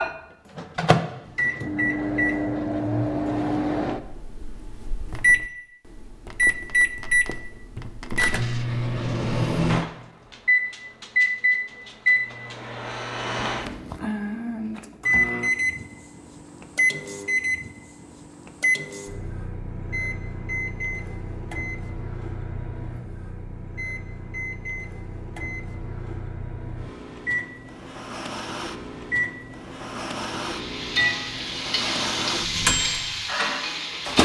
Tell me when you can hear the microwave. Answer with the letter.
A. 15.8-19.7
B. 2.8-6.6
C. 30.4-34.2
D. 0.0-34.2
D.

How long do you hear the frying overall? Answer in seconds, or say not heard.
4 s.